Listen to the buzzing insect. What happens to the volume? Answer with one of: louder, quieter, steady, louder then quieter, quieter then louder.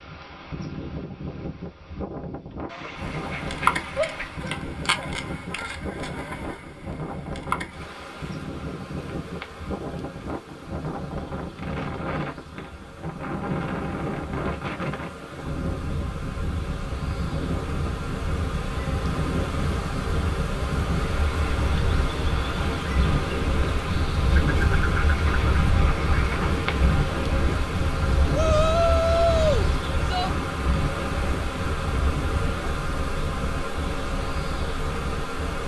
quieter then louder.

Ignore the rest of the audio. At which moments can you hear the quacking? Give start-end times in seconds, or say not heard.
2.6-4.4, 24.3-26.6.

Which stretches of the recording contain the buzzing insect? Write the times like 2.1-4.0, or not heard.
3.0-35.6.